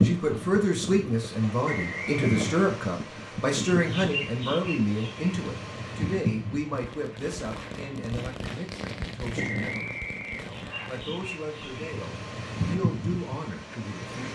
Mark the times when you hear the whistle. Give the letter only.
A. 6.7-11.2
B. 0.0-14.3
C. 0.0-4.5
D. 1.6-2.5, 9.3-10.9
D.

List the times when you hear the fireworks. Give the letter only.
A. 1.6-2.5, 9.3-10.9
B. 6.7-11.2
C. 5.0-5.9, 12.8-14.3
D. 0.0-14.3
B.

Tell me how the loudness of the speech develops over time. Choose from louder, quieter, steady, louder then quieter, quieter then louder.
quieter.